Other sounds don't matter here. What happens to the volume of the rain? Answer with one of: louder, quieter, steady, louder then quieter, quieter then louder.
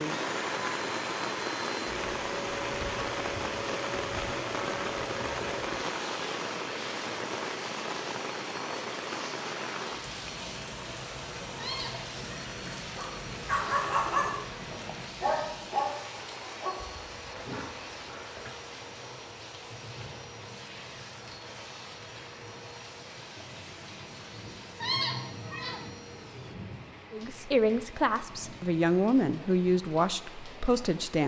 quieter.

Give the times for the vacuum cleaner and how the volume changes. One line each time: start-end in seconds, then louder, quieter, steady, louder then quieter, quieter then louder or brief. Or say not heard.
0.0-26.6 quieter.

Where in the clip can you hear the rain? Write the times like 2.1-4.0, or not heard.
0.0-31.2.